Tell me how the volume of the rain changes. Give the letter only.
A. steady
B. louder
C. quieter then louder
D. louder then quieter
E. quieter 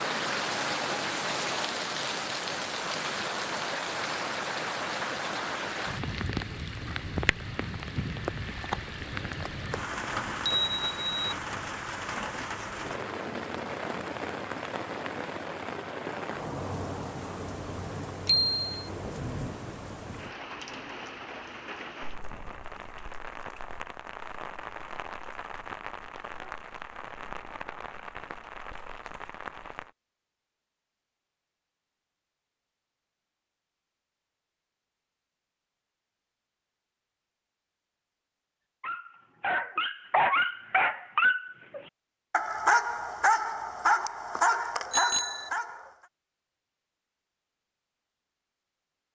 E.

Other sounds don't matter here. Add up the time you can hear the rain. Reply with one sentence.
You can hear the rain for 30 seconds altogether.